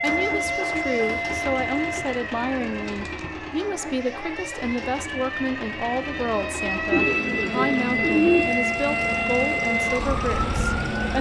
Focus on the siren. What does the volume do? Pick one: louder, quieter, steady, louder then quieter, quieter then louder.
quieter then louder.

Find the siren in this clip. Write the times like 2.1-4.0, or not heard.
0.0-11.1.